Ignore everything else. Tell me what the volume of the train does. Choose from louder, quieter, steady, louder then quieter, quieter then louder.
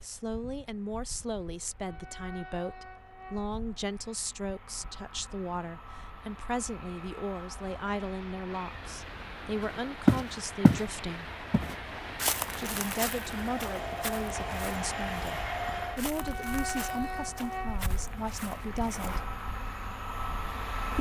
louder.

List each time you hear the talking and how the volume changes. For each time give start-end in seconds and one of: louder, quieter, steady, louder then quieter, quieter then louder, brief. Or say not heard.
0.0-11.3 steady
12.5-19.2 steady.